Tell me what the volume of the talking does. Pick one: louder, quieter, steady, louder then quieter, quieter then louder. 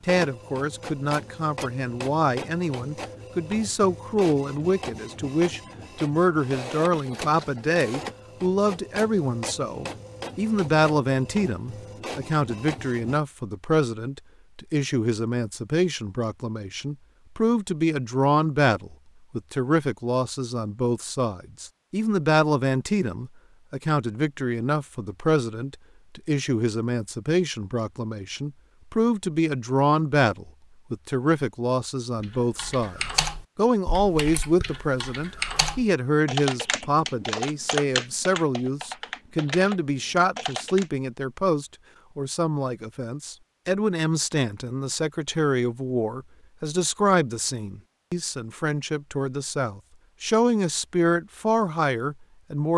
steady.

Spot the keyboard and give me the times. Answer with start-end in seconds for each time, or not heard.
32.2-40.9.